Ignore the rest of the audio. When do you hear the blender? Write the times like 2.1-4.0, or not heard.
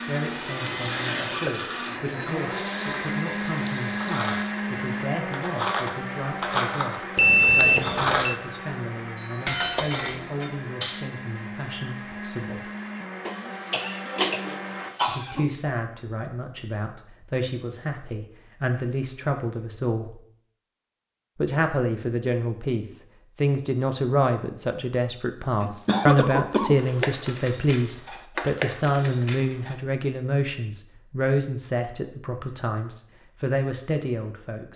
0.0-14.9.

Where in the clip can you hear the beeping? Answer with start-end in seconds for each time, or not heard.
7.2-8.4.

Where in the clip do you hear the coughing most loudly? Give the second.
26 s.